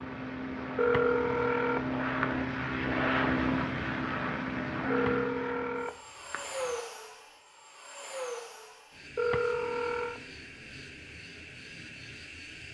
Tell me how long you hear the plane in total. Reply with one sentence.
You can hear the plane for 13 seconds altogether.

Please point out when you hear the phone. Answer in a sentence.
You can hear the phone from 0.8 to 2.4 s, from 4.9 to 6.8 s and from 9.2 to 10.2 s.